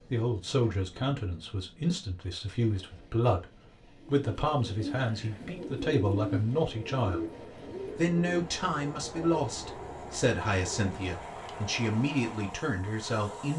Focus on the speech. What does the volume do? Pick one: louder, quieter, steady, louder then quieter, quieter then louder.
steady.